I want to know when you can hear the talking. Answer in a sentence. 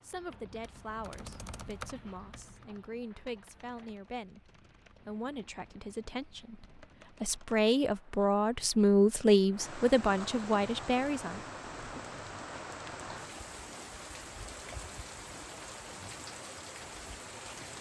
You can hear the talking from 0.0 to 12.0 s.